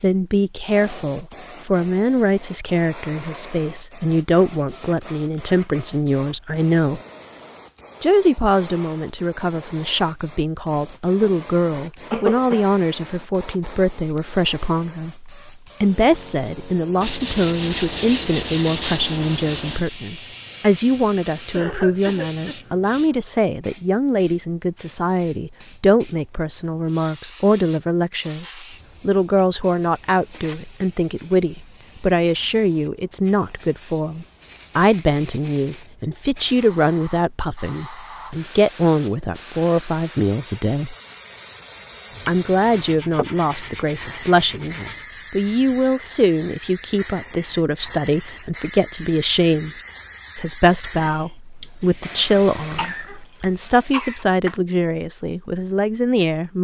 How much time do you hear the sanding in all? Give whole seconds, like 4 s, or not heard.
6 s.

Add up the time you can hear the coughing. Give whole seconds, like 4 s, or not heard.
3 s.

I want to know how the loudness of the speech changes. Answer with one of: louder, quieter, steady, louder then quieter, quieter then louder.
steady.